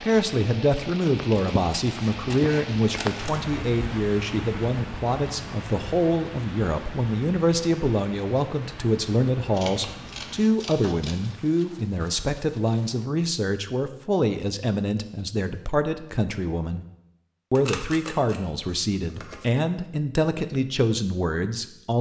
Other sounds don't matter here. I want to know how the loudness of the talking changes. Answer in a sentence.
The volume of the talking stays about the same.